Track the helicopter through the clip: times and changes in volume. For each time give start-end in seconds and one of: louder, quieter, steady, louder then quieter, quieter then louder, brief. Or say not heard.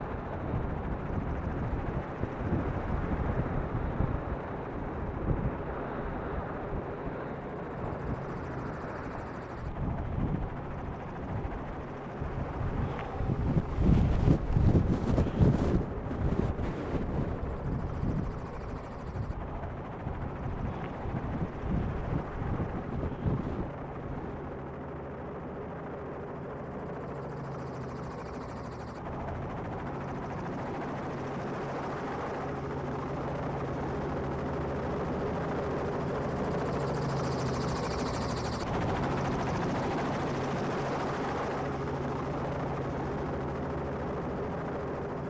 0.0-45.2 louder.